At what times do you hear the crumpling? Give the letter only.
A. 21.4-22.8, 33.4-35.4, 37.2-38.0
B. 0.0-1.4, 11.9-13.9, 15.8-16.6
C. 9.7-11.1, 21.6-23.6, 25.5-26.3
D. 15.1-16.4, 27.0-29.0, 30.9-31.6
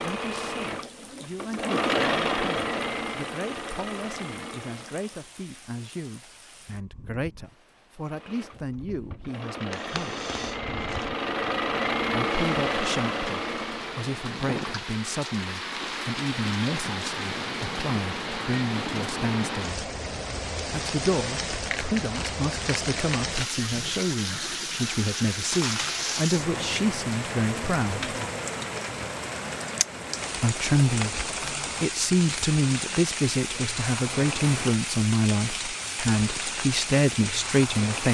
C.